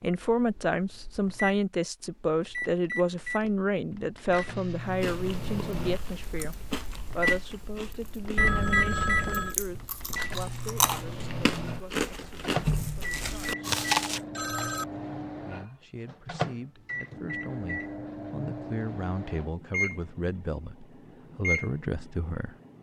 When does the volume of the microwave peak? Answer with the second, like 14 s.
9 s.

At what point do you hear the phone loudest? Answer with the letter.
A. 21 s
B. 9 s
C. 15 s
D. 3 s
B.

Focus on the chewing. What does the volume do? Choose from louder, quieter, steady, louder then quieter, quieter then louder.
louder.